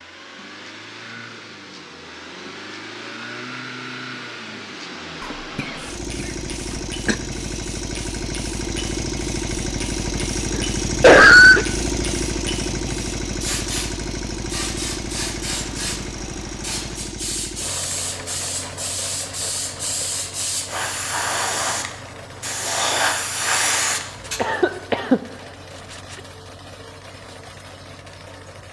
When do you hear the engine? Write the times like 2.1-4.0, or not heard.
0.0-28.6.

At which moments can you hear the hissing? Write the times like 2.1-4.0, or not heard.
5.9-24.4.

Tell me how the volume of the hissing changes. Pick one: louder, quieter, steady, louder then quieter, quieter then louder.
louder.